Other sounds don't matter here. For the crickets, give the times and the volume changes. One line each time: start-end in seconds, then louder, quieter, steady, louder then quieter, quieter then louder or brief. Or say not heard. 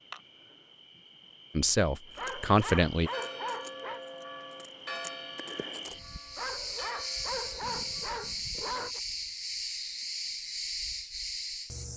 0.0-11.9 louder.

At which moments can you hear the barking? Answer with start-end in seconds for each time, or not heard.
2.1-4.0, 6.3-9.0.